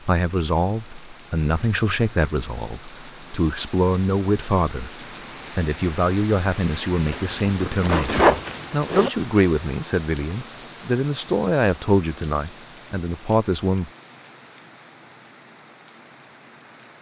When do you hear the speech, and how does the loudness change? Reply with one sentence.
You can hear the speech from 0.0 to 13.9 s, at a steady volume.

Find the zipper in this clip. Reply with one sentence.
The zipper can be heard from 7.1 to 9.1 s.